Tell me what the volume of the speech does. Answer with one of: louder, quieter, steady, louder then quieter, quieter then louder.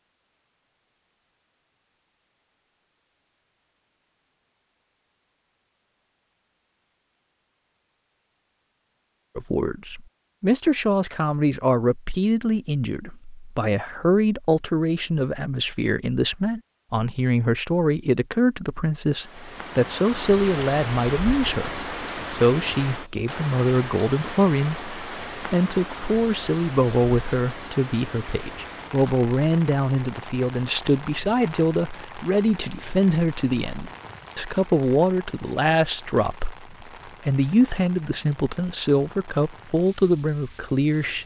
steady.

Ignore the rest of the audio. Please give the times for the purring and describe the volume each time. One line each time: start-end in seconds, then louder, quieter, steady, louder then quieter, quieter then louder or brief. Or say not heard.
not heard.